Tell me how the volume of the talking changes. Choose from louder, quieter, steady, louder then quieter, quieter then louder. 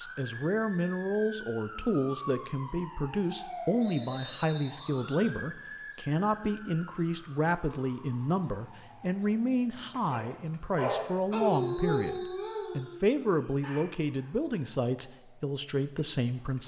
steady.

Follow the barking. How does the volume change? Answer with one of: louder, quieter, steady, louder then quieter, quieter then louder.
quieter.